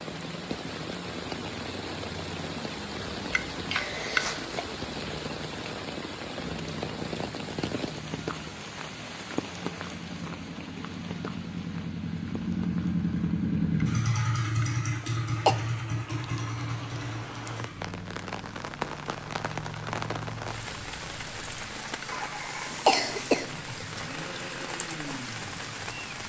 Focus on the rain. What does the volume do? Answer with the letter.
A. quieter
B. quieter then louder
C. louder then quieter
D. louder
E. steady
B.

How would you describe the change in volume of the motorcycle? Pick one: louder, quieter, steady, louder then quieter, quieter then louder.
louder then quieter.